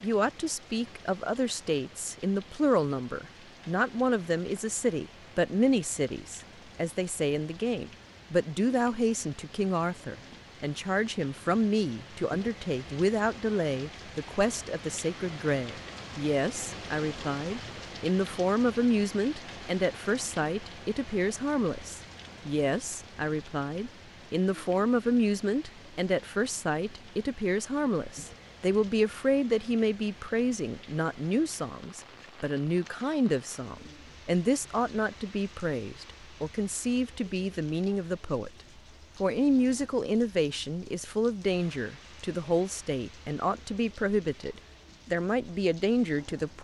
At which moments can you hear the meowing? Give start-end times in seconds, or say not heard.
not heard.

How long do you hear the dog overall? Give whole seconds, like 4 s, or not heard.
not heard.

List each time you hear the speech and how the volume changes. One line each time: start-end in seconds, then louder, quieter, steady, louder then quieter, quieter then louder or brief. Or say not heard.
0.0-38.5 steady
39.2-46.5 steady.